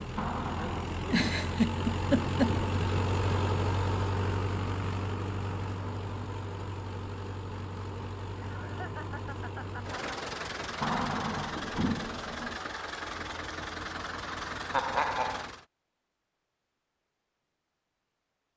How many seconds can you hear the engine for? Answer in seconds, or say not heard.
16 s.